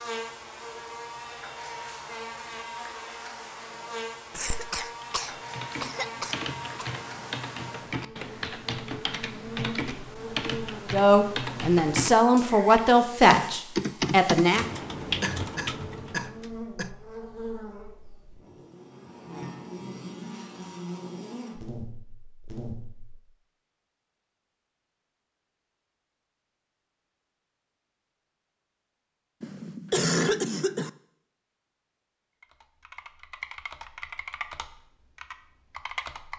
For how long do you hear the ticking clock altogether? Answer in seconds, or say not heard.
not heard.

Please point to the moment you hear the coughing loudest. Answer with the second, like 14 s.
30 s.